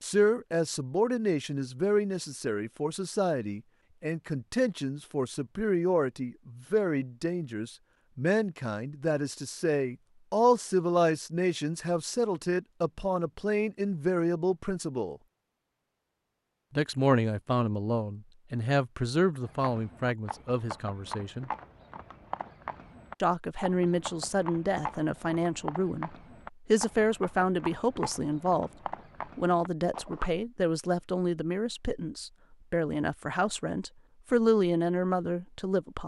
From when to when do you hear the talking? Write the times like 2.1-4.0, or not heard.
0.0-15.2, 16.8-21.5, 23.2-28.7, 29.4-36.0.